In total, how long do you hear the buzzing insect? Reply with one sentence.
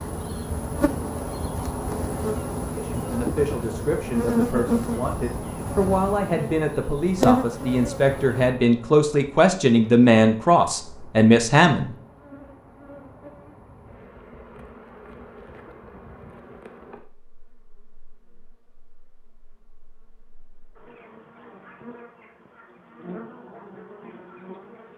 You can hear the buzzing insect for 25 seconds altogether.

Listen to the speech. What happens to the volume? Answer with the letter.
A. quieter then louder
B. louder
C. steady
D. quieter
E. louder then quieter
B.